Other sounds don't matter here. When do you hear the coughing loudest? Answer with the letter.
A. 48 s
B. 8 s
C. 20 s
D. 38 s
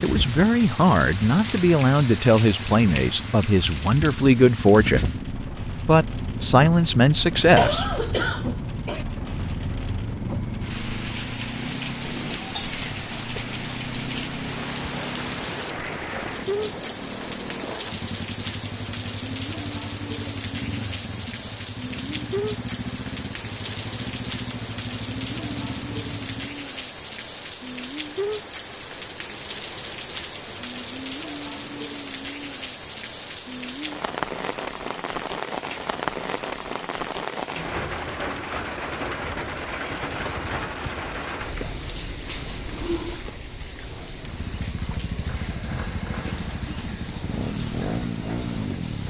B.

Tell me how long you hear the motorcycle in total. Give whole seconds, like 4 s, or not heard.
31 s.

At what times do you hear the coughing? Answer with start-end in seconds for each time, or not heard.
7.5-9.1.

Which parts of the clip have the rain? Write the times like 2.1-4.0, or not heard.
0.0-49.0.